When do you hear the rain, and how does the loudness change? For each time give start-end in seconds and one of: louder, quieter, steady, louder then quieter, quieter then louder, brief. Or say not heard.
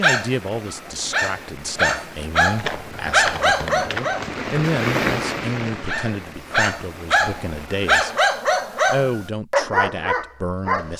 0.1-8.2 louder then quieter.